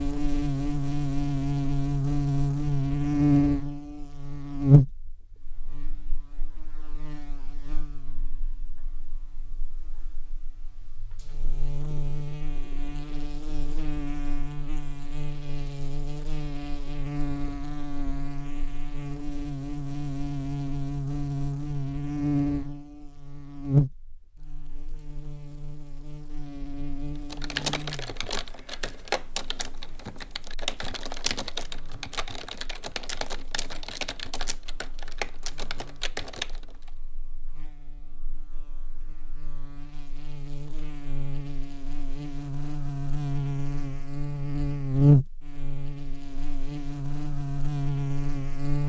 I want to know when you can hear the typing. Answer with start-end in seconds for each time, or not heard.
27.3-36.9.